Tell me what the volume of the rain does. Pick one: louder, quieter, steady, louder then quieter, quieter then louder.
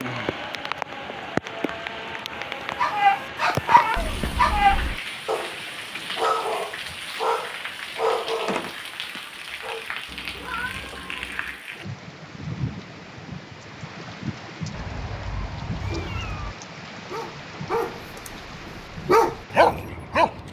quieter.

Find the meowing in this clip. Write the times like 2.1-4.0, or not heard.
4.0-5.0, 10.1-11.6, 14.7-16.6.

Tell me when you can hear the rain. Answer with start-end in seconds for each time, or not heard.
0.0-20.4.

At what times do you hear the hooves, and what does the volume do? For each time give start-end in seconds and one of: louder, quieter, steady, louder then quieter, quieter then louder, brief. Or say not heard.
not heard.